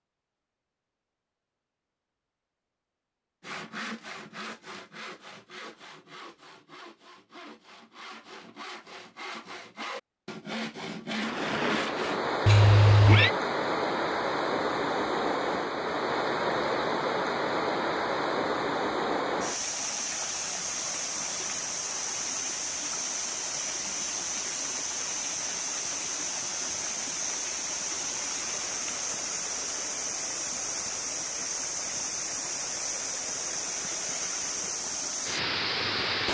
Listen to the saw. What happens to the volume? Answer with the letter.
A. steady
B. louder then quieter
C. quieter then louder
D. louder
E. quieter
C.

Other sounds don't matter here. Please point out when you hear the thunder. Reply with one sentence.
The thunder can't be heard in this clip.